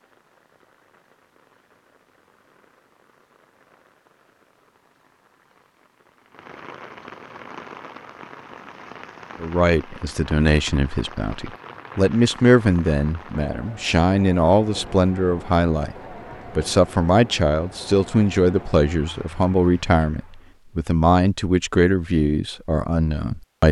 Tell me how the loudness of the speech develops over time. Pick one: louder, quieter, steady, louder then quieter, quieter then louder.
steady.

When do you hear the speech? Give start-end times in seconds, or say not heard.
9.4-15.9, 16.6-23.6.